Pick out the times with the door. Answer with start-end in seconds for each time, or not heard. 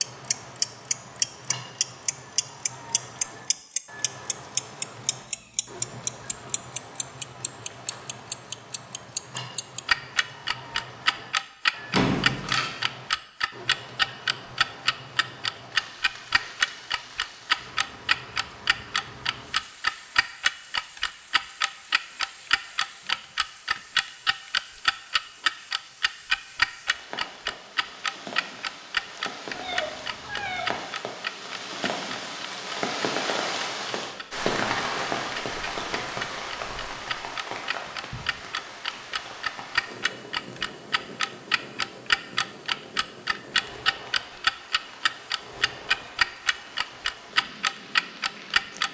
11.9-12.7.